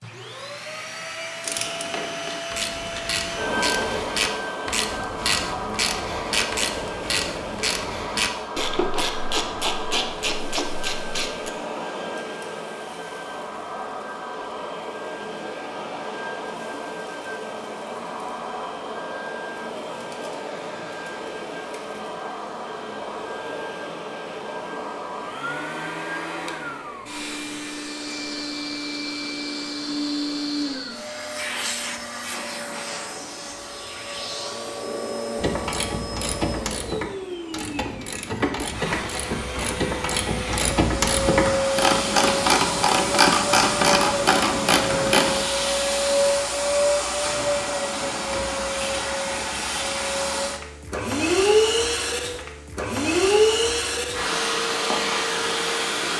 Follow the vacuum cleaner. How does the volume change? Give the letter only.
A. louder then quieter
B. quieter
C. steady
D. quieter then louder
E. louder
E.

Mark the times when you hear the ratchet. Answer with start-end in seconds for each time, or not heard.
1.4-11.5, 35.4-45.5.